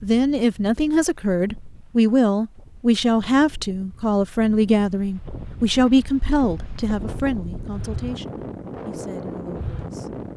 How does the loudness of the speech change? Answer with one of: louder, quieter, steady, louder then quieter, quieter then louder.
quieter.